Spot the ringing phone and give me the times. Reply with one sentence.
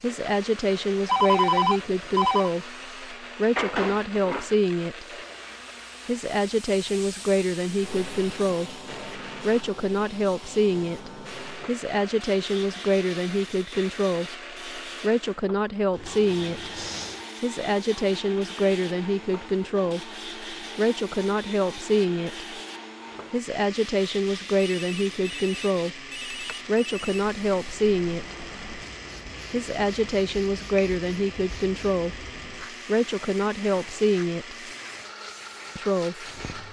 The ringing phone can be heard from 1.1 to 2.5 s, from 15.9 to 17.2 s and from 24.6 to 27.1 s.